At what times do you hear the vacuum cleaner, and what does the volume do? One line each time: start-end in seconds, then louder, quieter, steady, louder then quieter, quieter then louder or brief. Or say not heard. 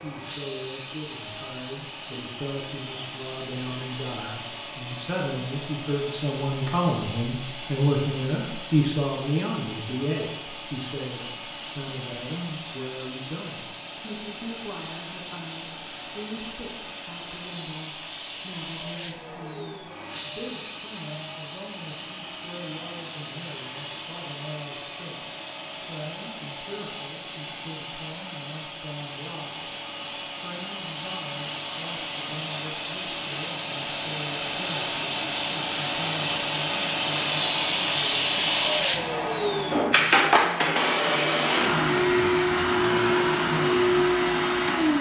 0.0-44.9 louder.